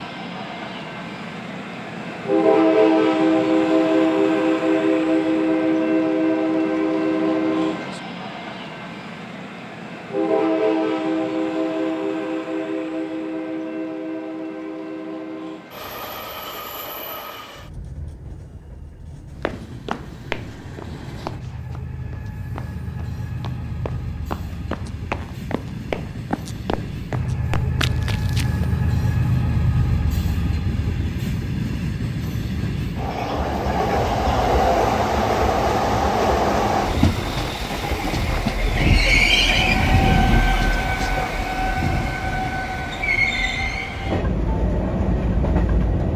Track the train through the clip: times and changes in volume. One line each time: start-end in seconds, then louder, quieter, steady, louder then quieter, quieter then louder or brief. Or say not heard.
0.0-46.1 quieter then louder.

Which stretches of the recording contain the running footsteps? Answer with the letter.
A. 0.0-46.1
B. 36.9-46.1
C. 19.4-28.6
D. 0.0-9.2
C.